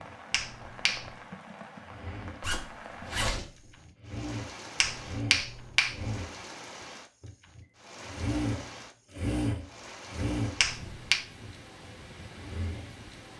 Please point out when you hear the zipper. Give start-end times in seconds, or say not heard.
2.4-3.8.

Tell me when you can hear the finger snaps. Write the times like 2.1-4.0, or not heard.
0.3-1.1, 4.8-6.1, 10.6-11.2.